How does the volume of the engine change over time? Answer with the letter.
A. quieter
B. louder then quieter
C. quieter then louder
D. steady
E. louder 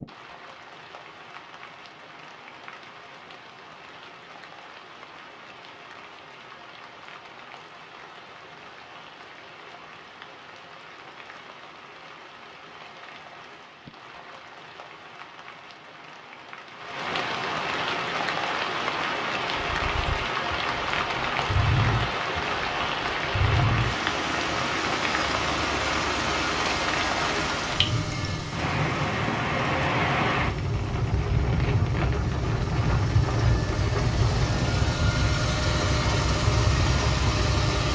C.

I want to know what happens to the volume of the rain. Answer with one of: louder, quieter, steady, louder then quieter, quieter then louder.
louder.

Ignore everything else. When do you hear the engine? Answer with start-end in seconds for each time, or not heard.
19.7-37.8.